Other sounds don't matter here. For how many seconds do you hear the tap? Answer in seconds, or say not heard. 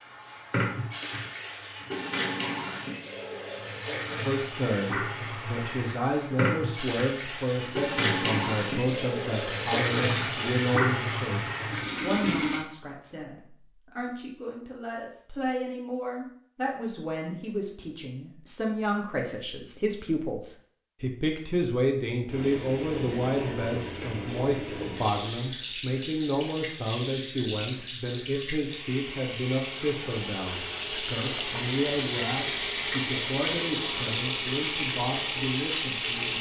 27 s.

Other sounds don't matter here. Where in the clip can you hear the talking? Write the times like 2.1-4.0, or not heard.
4.2-11.4, 12.0-36.3.